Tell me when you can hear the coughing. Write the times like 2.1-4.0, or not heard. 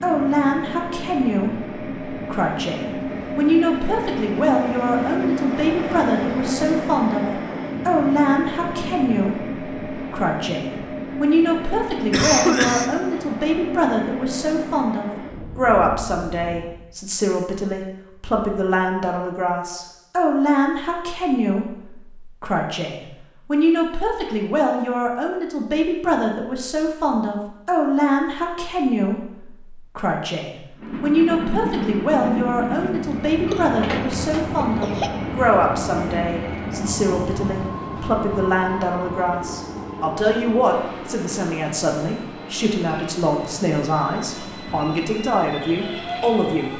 12.1-12.9, 33.5-35.1.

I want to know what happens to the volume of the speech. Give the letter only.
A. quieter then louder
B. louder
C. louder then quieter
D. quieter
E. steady
E.